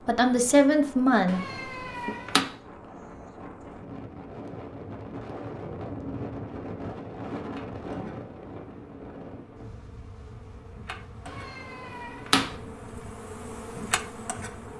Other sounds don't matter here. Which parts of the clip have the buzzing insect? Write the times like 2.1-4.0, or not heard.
7.4-14.7.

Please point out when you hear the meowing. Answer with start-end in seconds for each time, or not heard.
1.2-2.5, 11.2-12.6.